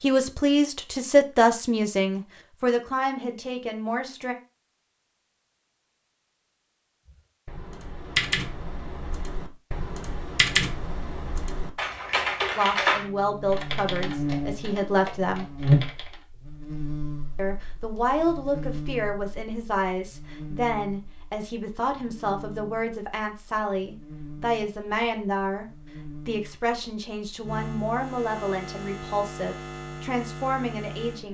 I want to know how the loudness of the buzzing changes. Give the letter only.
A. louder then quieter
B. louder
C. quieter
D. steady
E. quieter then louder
E.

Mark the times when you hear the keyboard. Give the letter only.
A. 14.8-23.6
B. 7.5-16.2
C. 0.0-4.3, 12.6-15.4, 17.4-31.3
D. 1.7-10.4
B.